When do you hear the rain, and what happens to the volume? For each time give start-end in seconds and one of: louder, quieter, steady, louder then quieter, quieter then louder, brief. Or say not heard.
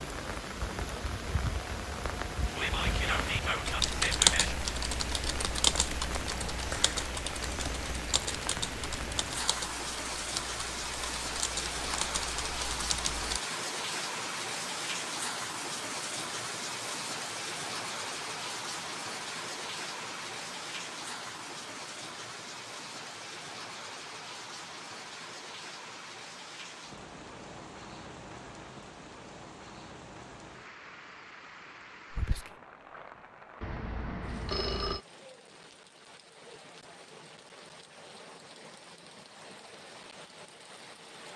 0.0-41.3 quieter.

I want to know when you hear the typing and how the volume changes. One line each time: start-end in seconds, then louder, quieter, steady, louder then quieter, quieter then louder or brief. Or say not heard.
3.6-13.4 quieter.